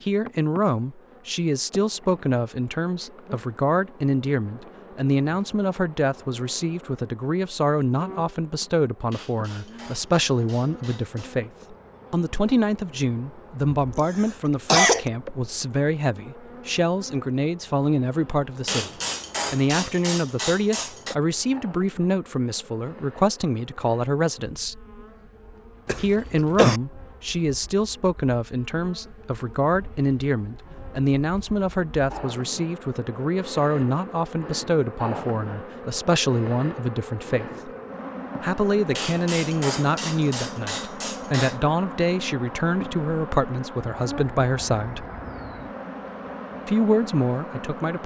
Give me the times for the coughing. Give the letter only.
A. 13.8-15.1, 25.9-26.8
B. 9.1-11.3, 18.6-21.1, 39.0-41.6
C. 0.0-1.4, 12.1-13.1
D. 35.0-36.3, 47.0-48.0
A.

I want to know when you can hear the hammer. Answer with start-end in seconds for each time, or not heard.
9.1-11.3, 18.6-21.1, 39.0-41.6.